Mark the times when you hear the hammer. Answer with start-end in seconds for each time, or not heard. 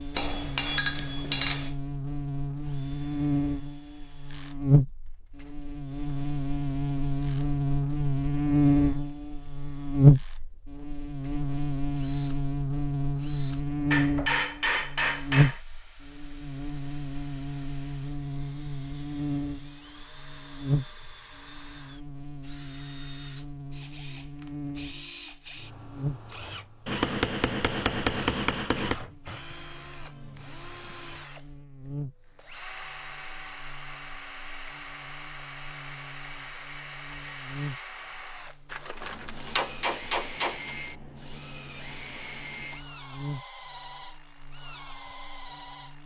0.1-1.8, 13.9-15.6, 26.9-29.0, 38.7-40.7.